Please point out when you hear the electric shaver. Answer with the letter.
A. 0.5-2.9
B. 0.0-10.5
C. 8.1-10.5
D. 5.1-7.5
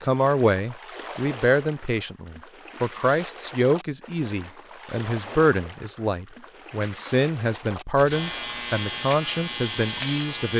C.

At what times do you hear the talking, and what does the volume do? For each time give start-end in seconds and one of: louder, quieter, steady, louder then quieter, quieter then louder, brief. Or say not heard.
0.0-10.5 steady.